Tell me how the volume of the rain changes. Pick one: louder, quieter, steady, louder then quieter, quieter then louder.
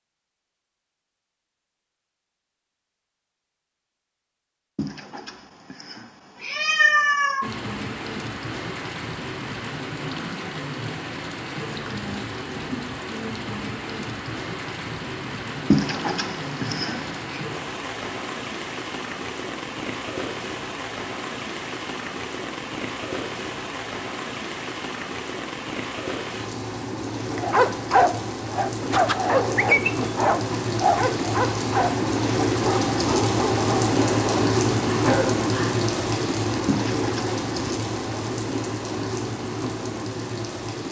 louder.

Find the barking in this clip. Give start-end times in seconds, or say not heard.
27.3-35.8.